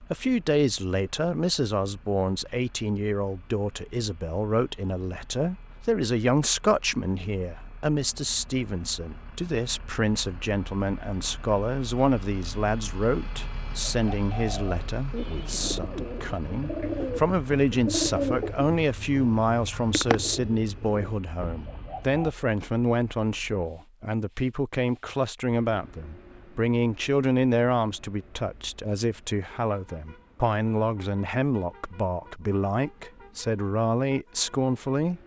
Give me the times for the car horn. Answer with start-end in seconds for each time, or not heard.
not heard.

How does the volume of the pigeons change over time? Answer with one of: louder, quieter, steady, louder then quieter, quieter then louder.
louder then quieter.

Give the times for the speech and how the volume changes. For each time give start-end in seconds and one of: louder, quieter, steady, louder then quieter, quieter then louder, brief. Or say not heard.
0.0-35.2 steady.